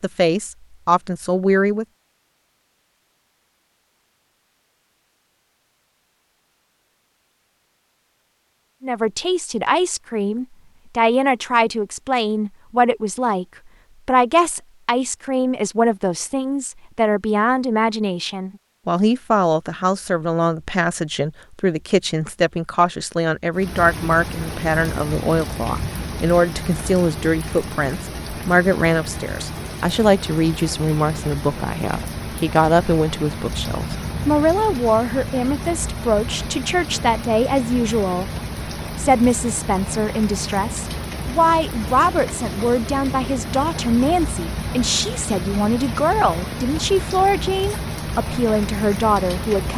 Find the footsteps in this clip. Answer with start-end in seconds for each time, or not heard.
not heard.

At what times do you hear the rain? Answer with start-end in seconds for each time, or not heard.
23.5-49.7.